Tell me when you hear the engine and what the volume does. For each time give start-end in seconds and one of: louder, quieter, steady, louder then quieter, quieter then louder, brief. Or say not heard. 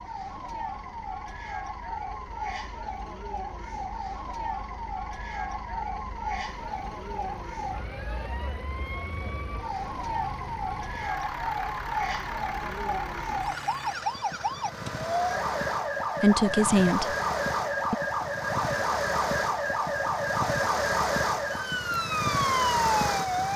0.0-23.5 louder.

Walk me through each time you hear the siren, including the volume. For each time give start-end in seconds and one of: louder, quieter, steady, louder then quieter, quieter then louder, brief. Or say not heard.
0.0-23.5 louder.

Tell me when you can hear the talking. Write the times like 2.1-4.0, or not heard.
16.2-17.1.